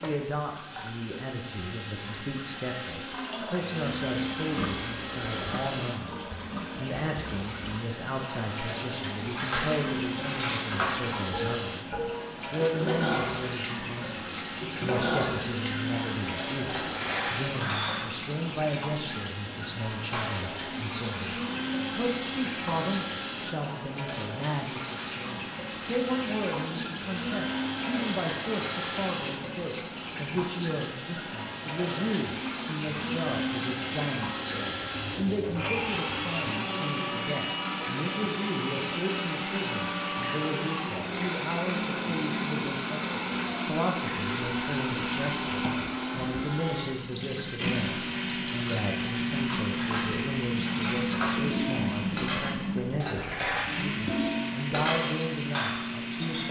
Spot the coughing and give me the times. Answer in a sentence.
You can't hear the coughing here.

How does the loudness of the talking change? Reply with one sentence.
The loudness of the talking stays about the same.